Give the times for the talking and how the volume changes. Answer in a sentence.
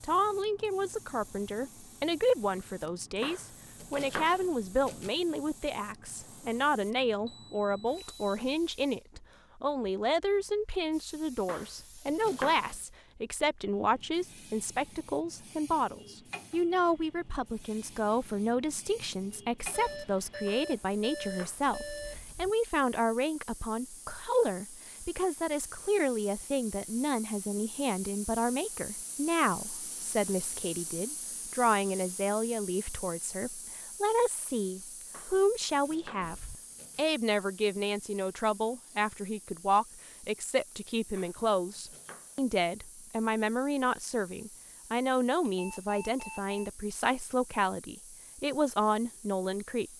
You can hear the talking from 0.0 to 49.9 s, at a steady volume.